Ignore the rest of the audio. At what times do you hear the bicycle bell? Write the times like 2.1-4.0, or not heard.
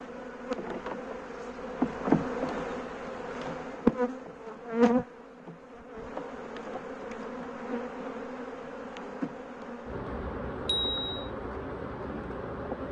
10.7-11.3.